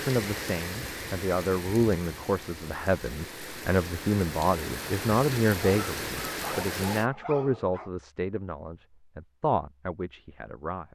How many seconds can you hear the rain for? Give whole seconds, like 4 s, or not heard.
7 s.